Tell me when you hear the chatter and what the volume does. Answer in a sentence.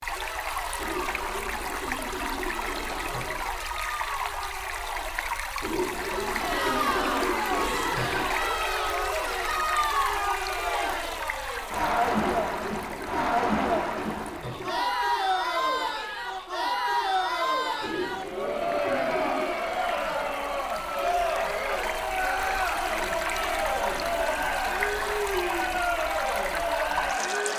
The chatter can be heard from 0.1 to 27.5 s, getting louder.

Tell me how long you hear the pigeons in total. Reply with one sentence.
The pigeons can be heard for 12 seconds in total.